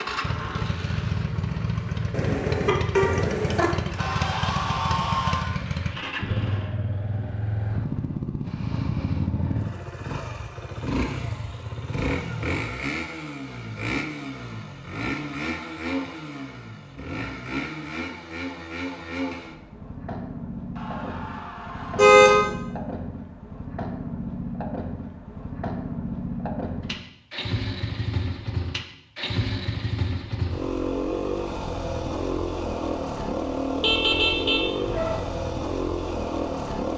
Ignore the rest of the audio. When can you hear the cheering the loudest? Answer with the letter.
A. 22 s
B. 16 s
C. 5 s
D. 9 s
C.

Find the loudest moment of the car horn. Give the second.
22 s.